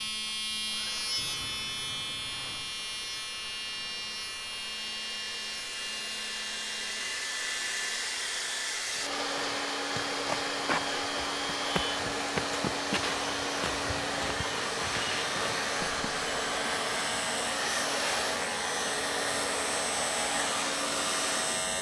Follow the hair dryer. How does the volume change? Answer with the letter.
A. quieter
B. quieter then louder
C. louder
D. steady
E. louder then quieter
C.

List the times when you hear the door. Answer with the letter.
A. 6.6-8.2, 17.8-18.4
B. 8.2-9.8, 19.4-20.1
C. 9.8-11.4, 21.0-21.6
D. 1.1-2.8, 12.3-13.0
D.